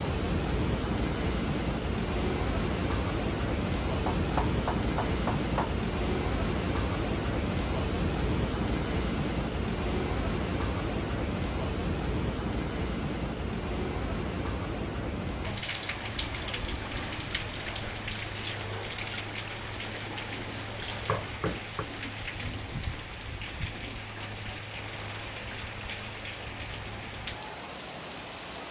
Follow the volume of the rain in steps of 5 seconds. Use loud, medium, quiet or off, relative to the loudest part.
loud, loud, loud, medium, medium, medium.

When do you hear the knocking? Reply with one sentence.
You can hear the knocking from 4.0 to 5.8 s and from 21.1 to 21.9 s.